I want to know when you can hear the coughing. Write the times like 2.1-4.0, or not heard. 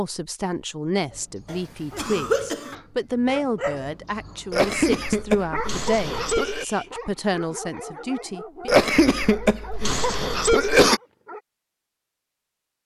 1.5-2.8, 4.5-6.7, 8.7-11.0.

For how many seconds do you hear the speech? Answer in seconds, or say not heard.
9 s.